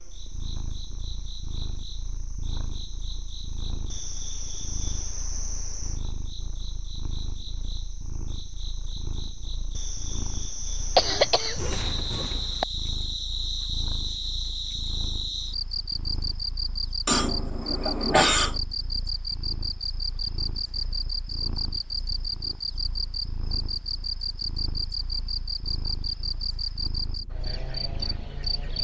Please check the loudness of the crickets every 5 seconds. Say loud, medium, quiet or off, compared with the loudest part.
medium, medium, loud, loud, loud, loud.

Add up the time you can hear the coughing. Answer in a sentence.
You can hear the coughing for 3 seconds altogether.